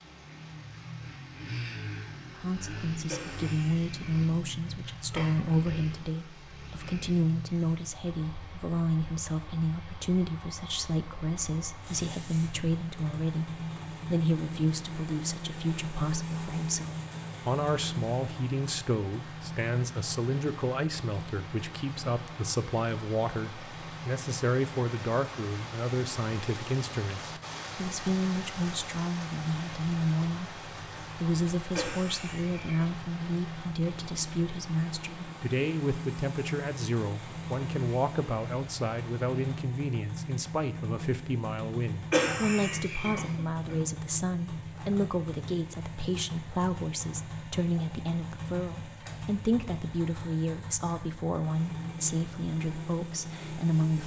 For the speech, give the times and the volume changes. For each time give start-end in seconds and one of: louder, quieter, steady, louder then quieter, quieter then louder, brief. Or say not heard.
2.4-54.0 steady.